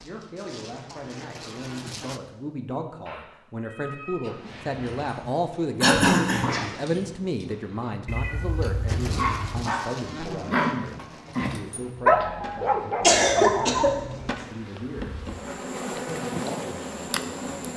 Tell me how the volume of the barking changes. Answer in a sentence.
The loudness of the barking goes up.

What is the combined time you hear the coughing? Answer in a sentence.
You can hear the coughing for 2 seconds altogether.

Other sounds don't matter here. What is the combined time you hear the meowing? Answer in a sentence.
You can hear the meowing for 4 seconds altogether.